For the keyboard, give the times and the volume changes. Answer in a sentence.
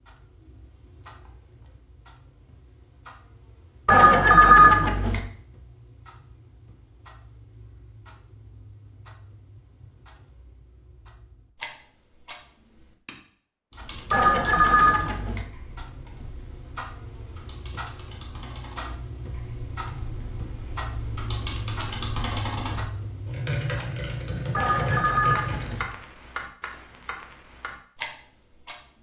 You can hear the keyboard from 13.7 to 25.9 s, getting quieter then louder.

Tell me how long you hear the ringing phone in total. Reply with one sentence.
The ringing phone can be heard for 4 seconds in total.